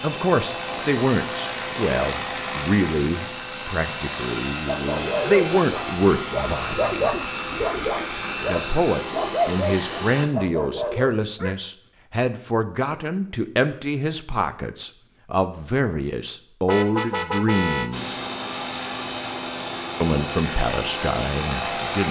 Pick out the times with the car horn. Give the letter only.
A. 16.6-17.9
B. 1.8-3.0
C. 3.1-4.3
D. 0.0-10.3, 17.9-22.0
A.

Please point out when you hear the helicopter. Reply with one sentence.
The helicopter can be heard from 0.0 to 10.3 s and from 17.9 to 22.0 s.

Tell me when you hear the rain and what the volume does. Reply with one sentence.
The rain can't be heard in this clip.